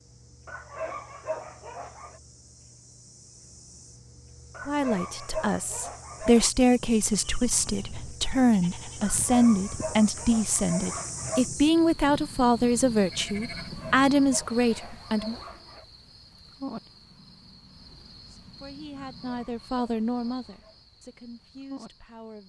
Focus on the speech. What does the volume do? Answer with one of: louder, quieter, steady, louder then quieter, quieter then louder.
quieter.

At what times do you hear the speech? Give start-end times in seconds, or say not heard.
4.7-15.3, 18.2-22.4.